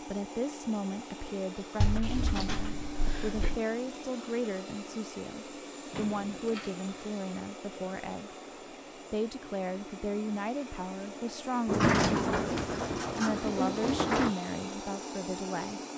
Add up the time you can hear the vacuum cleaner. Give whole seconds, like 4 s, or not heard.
16 s.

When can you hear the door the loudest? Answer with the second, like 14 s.
12 s.